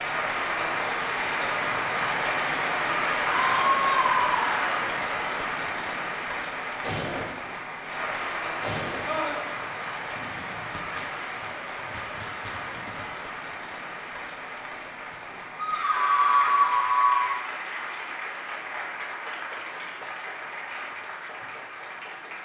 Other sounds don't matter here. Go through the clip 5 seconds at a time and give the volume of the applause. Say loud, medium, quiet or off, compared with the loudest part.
loud, medium, medium, medium, medium.